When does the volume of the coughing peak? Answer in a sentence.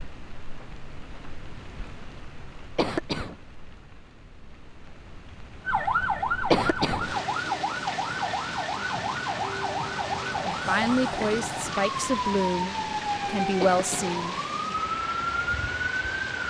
The loudest moment of the coughing is at 7 seconds.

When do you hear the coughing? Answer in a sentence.
You can hear the coughing from 2.8 to 3.4 s, from 6.5 to 7.1 s and from 13.6 to 14.2 s.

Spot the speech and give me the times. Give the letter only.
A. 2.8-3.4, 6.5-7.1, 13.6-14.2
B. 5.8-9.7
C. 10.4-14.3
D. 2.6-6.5
C.